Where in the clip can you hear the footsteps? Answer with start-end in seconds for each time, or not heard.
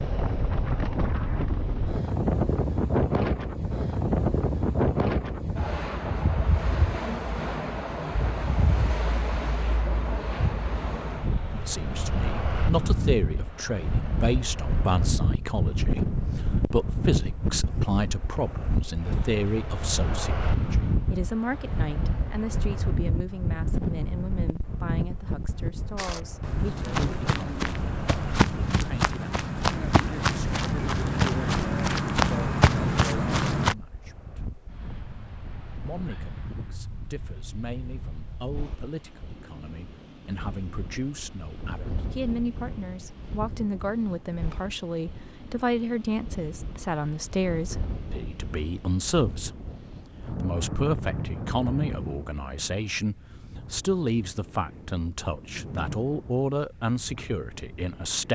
25.9-33.8.